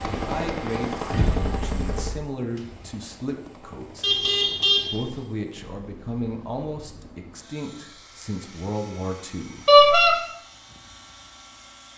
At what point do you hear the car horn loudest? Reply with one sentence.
The volume of the car horn peaks at 10 seconds.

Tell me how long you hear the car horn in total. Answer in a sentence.
You can hear the car horn for 3 seconds altogether.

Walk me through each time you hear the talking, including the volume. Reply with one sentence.
The talking can be heard from 0.1 to 9.7 s, at a steady volume.